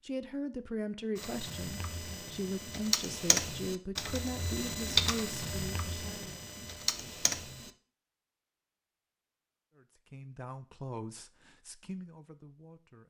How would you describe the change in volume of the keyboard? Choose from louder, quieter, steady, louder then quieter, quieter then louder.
louder then quieter.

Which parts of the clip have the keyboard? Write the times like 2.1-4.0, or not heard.
1.1-7.7.